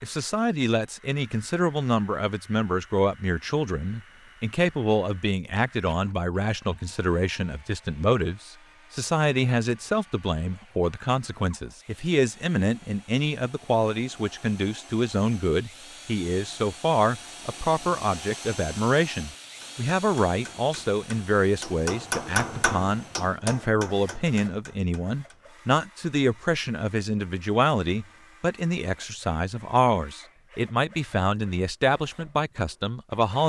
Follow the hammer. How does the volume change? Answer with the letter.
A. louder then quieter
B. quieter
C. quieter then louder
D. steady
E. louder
A.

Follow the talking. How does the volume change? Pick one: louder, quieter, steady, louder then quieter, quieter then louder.
steady.